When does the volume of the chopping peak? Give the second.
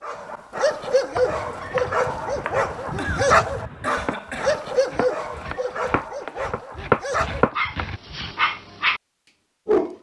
7 s.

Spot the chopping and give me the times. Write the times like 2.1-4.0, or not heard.
1.1-8.6.